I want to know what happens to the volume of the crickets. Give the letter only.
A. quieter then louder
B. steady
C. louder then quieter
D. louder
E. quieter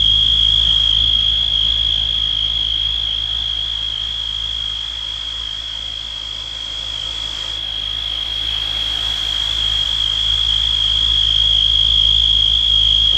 A.